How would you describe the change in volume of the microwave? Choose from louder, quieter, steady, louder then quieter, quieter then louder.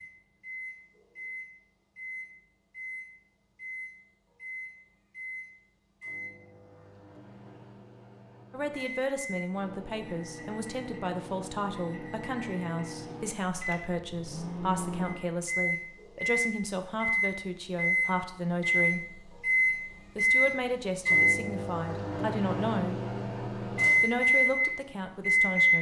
louder.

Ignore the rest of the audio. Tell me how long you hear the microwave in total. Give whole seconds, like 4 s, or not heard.
26 s.